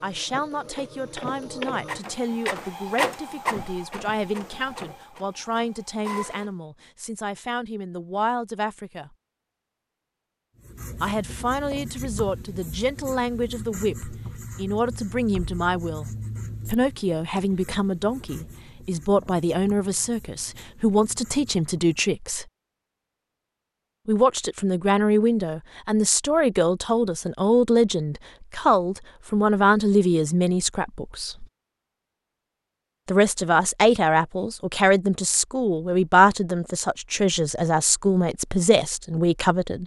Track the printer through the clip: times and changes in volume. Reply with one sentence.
You can hear the printer from 0.0 to 6.5 s, getting louder then quieter.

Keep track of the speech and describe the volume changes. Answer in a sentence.
The volume of the speech goes up.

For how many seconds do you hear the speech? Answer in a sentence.
The speech can be heard for 35 seconds in total.